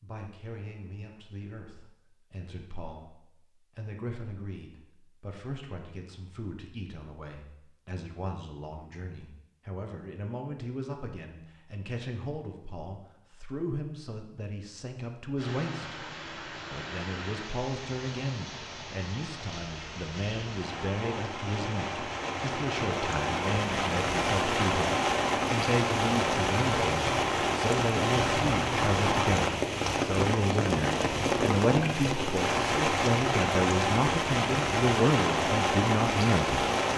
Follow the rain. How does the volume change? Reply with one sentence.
The loudness of the rain goes up.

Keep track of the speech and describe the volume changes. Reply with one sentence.
The volume of the speech goes up.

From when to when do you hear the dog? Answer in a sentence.
The dog can't be heard in this clip.